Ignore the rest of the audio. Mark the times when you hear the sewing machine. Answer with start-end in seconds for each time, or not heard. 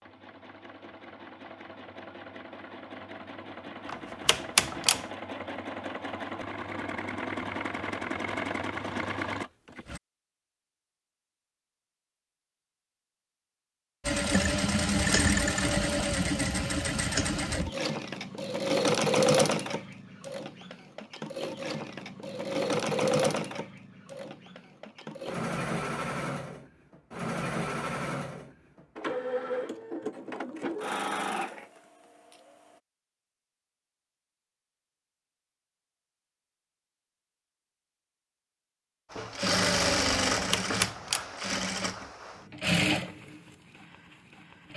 0.0-10.0, 14.1-32.5, 39.1-44.7.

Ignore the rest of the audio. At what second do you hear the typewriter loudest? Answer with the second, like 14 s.
5 s.